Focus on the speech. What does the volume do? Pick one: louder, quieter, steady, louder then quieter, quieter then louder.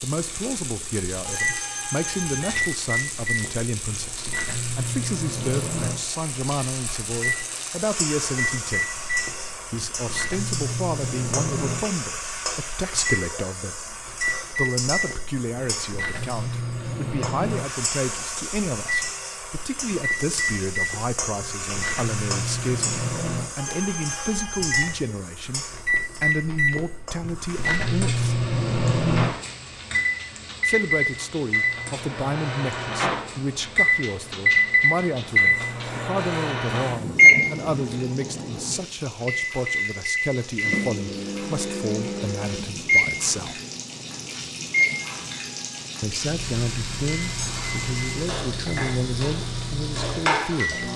steady.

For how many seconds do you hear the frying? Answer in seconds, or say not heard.
51 s.